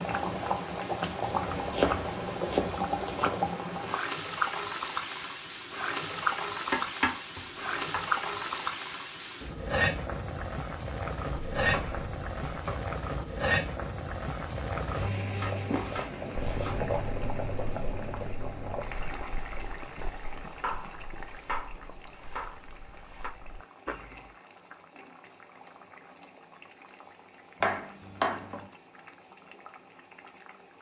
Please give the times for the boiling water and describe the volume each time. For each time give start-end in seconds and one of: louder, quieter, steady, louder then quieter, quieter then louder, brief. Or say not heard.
0.0-30.7 quieter.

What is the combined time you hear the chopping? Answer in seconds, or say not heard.
10 s.